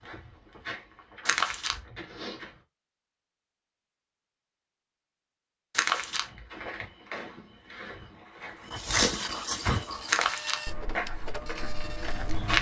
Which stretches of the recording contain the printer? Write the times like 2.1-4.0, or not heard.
9.8-12.4.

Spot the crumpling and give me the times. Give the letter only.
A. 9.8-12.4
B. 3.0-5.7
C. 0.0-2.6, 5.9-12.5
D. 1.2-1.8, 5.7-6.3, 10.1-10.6
D.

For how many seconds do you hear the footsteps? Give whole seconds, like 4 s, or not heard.
9 s.